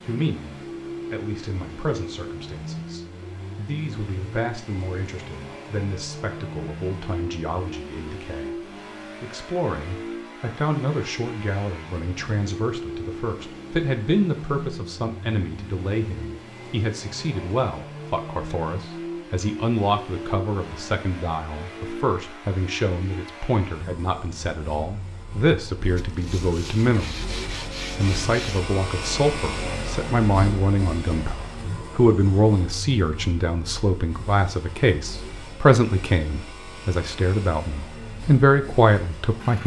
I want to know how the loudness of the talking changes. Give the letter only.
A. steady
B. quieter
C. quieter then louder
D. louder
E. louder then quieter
D.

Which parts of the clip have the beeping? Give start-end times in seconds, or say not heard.
not heard.